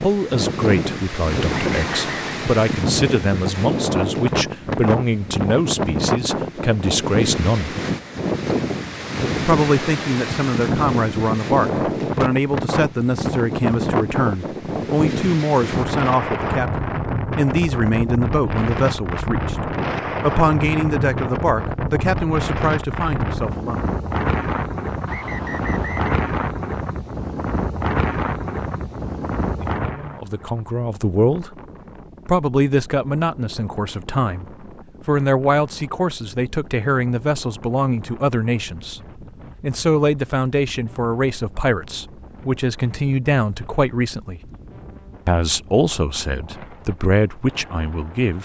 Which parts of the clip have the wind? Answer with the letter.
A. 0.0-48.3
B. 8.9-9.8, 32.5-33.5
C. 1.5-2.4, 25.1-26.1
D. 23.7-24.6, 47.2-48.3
A.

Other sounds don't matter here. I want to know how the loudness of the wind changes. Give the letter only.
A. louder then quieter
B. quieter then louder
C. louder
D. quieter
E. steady
D.